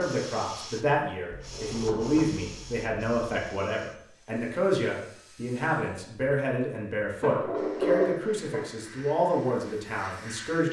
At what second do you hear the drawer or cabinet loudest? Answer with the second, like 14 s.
8 s.